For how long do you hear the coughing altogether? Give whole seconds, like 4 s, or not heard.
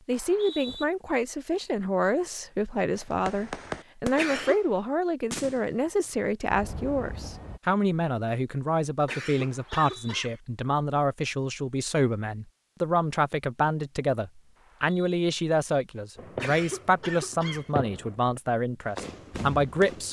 3 s.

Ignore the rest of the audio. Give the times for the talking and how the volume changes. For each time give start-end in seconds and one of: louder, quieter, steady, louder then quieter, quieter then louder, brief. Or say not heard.
0.1-20.0 steady.